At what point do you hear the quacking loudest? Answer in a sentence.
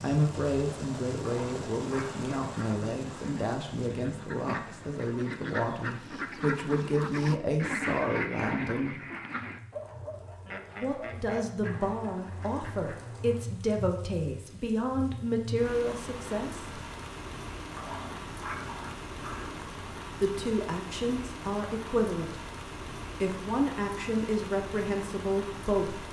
The volume of the quacking peaks at 8 seconds.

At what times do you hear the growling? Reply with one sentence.
The growling can be heard from 1.2 to 2.3 s and from 17.8 to 19.6 s.